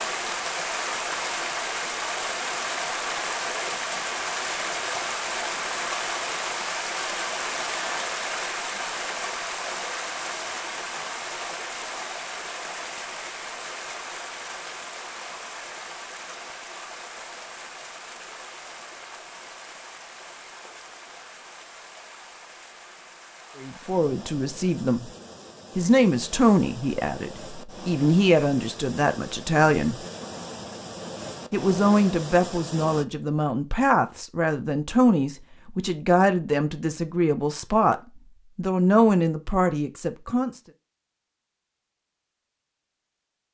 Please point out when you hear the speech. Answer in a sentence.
The speech can be heard from 23.6 to 25.1 s, from 25.8 to 30.0 s, from 31.5 to 38.0 s and from 38.5 to 40.6 s.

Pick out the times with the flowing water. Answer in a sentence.
The flowing water can be heard from 0.0 to 33.0 s.